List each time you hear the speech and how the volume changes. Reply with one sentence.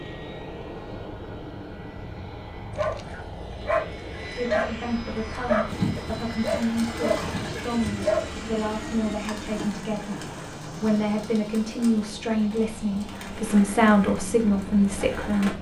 You can hear the speech from 4.3 to 15.5 s, getting louder.